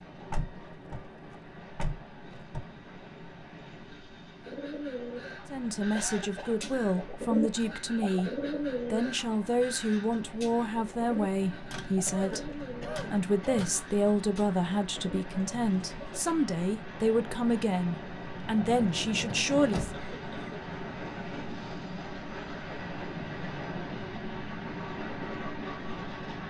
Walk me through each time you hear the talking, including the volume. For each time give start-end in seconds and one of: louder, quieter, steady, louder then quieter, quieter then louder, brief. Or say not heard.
5.5-8.3 brief
8.9-19.9 steady.